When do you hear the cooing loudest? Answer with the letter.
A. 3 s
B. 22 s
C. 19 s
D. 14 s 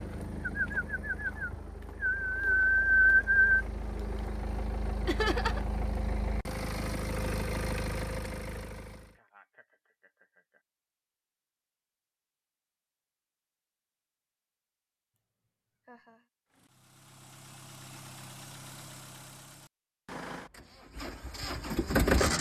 A.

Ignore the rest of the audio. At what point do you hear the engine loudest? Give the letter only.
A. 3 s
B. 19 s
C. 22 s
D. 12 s
C.